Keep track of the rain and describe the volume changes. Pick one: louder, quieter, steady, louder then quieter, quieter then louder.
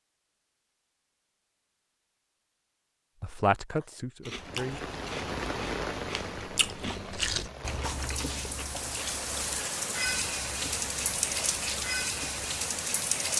quieter then louder.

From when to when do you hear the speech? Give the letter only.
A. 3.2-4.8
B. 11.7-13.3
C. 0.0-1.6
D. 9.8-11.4
A.